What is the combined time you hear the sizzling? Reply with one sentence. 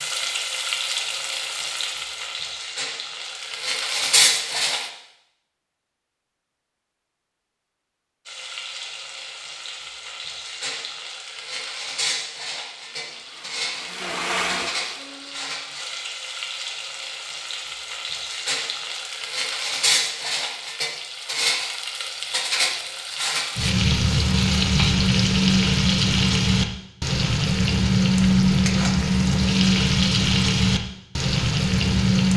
You can hear the sizzling for 29 seconds altogether.